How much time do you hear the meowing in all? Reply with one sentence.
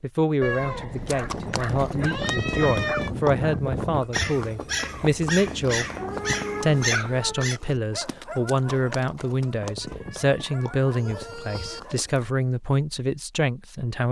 You can hear the meowing for 6 seconds altogether.